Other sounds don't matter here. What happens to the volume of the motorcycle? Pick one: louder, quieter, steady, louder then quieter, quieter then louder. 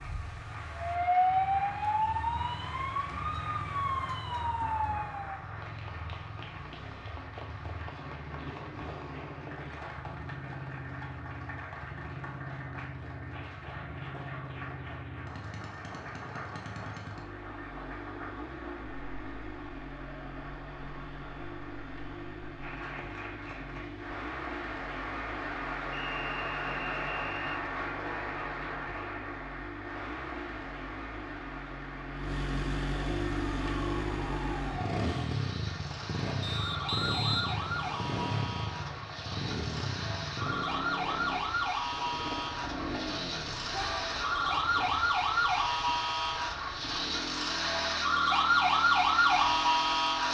louder then quieter.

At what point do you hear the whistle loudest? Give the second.
37 s.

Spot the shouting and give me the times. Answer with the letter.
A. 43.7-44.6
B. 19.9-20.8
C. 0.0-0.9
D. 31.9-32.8
A.